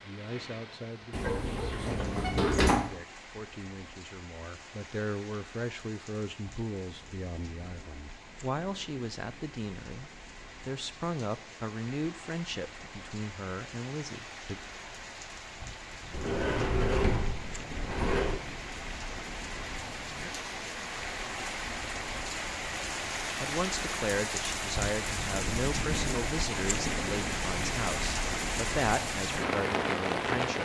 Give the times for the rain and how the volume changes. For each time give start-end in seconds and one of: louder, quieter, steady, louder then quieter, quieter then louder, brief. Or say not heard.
0.0-30.6 louder.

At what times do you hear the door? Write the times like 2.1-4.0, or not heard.
1.1-2.9, 16.1-18.4.